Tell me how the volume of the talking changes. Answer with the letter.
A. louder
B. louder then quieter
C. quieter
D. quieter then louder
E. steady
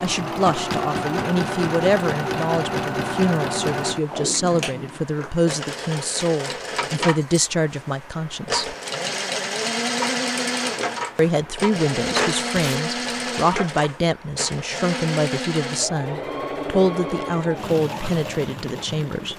E.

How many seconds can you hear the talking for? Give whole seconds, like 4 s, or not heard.
17 s.